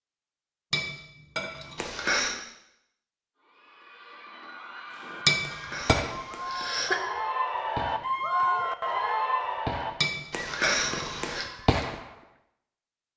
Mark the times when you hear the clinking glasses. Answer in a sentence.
The clinking glasses can be heard from 0.7 to 1.8 s, from 5.2 to 6.0 s and from 10.0 to 11.2 s.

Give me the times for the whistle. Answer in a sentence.
The whistle can't be heard in this clip.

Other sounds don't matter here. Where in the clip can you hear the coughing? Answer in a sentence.
You can hear the coughing from 1.8 to 2.4 s, from 5.4 to 7.0 s and from 10.3 to 11.4 s.